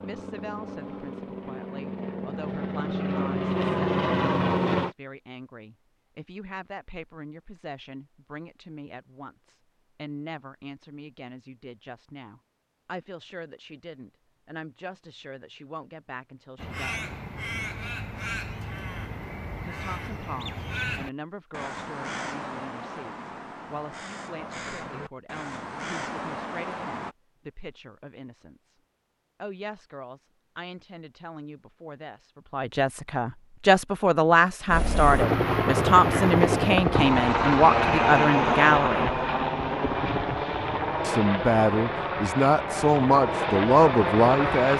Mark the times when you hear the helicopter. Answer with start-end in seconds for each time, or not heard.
0.0-5.0, 34.6-44.7.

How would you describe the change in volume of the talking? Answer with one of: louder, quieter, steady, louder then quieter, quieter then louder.
louder.